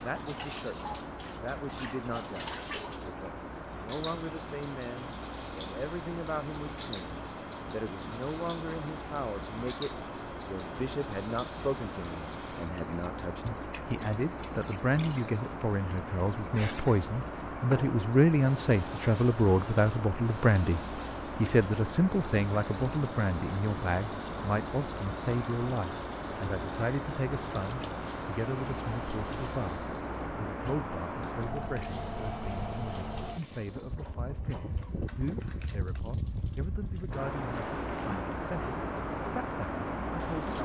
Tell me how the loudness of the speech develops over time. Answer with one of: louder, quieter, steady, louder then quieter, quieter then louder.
louder then quieter.